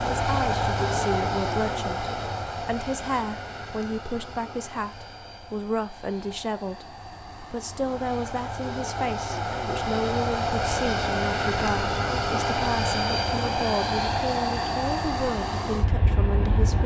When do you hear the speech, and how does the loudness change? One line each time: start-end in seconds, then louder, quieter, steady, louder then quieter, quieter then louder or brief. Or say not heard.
0.1-16.8 steady.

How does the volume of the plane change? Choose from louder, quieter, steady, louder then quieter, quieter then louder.
quieter then louder.